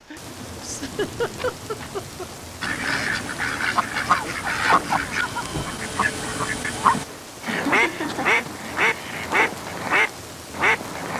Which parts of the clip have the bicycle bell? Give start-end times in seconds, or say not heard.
not heard.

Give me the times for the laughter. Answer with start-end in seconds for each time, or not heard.
0.6-2.2, 6.9-8.4.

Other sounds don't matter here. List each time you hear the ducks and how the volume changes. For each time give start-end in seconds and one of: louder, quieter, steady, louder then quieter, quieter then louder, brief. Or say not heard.
2.6-11.1 steady.